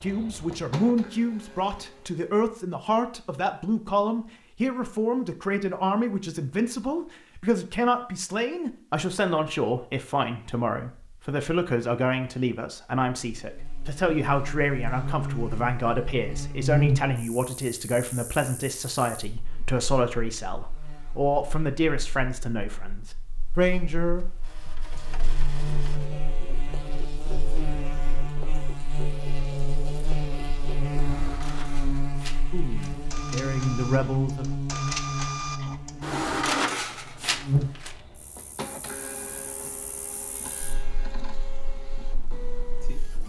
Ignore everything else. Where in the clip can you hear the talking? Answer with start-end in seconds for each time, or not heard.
0.0-24.2, 32.5-34.5.